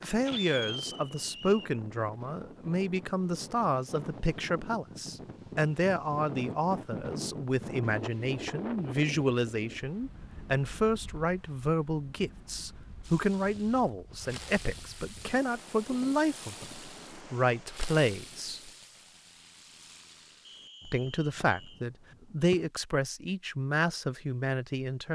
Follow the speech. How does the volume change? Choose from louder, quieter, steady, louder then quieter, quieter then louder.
steady.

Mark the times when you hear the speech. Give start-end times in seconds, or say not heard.
0.0-18.7, 20.9-25.0.